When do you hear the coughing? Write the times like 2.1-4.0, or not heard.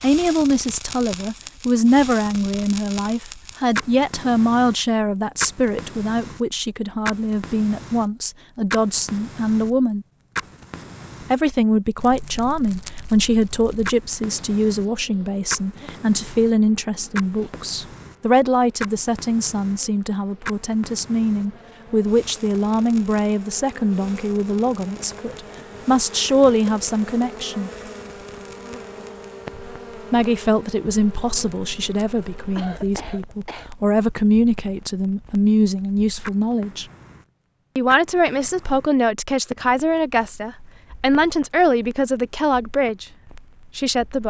32.5-33.7.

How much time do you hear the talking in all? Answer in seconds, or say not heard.
39 s.